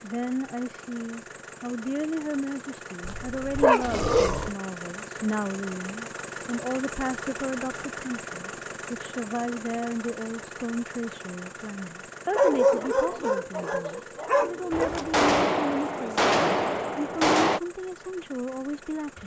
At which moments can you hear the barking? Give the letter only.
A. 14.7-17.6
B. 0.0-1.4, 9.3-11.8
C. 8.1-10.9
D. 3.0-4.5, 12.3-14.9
D.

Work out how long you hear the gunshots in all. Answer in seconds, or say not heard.
3 s.